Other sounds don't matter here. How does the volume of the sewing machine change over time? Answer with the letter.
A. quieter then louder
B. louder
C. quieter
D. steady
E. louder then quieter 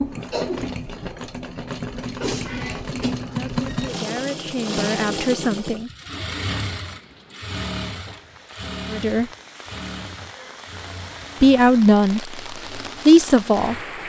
C.